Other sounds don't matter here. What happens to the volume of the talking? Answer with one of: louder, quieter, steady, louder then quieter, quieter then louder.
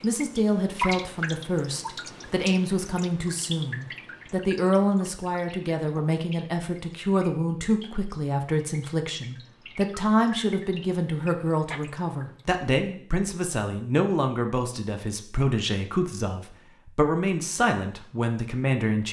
steady.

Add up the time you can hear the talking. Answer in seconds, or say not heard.
19 s.